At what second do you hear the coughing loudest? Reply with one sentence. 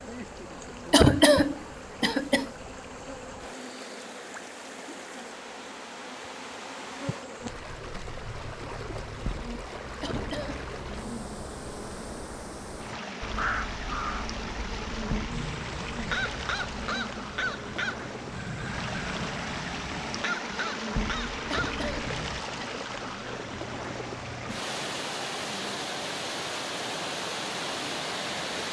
The volume of the coughing peaks at 1 second.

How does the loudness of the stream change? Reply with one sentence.
The loudness of the stream goes up.